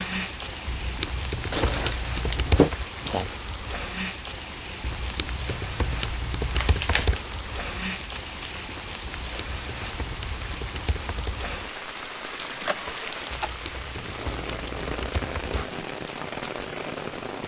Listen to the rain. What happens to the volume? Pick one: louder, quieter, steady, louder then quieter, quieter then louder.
steady.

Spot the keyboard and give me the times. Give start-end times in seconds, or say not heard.
0.7-2.8, 4.8-7.2, 9.0-11.3, 13.3-15.6.